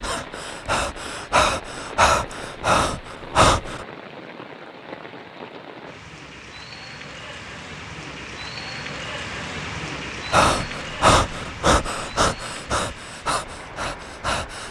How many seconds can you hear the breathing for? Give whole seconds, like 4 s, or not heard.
8 s.